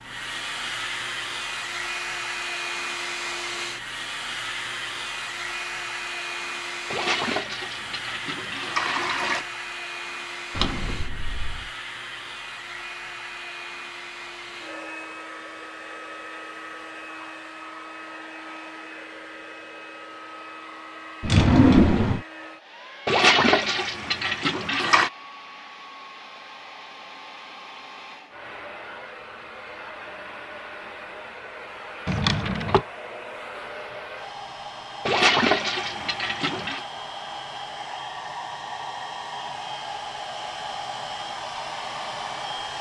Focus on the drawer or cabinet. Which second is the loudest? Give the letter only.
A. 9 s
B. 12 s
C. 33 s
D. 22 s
D.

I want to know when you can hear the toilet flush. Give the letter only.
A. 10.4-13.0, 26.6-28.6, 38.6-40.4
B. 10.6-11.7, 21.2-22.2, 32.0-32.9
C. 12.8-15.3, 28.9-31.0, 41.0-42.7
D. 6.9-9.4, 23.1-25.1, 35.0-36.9
D.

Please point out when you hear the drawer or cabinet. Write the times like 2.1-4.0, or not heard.
10.6-11.7, 21.2-22.2, 32.0-32.9.